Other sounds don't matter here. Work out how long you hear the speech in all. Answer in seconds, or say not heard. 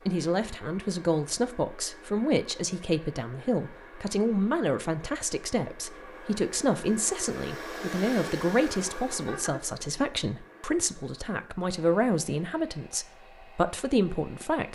15 s.